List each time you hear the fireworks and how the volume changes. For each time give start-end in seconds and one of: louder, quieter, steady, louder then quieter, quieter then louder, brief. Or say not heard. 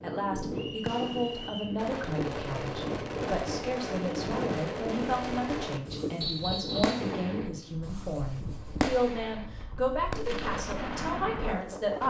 0.8-12.0 steady.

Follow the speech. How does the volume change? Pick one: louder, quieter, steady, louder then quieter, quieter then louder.
steady.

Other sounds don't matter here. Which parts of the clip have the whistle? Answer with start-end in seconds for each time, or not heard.
0.6-1.8, 6.2-7.0.